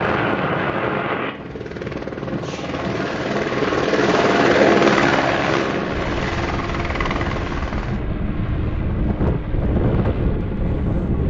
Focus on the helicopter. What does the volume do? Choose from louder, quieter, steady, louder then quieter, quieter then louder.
louder then quieter.